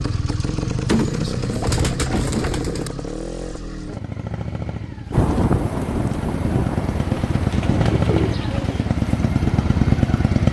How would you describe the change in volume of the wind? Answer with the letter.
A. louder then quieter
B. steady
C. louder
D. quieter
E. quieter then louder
E.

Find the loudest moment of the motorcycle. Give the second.
10 s.